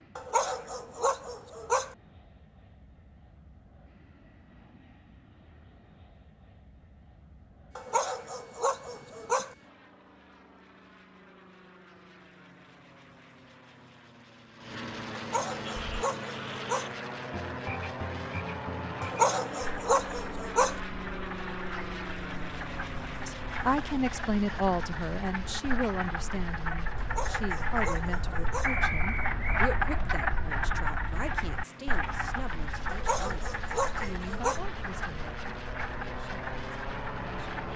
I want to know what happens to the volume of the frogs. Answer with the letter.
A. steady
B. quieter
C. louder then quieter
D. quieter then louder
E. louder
C.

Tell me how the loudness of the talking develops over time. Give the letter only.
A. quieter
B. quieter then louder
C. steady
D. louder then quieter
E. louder
A.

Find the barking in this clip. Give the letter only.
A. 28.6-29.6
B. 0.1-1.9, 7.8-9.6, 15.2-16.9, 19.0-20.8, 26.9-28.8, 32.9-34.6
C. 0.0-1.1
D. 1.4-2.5
B.